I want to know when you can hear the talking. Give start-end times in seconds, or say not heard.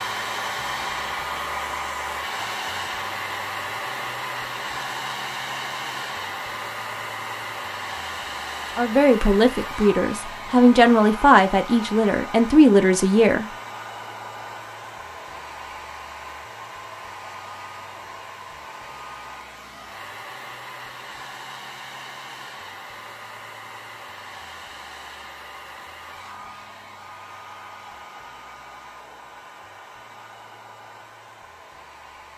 8.8-13.4.